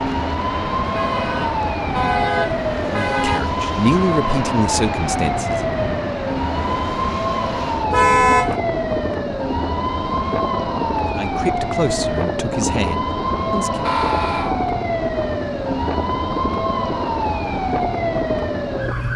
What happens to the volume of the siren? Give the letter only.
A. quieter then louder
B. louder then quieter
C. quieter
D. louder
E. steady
E.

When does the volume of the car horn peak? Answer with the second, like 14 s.
8 s.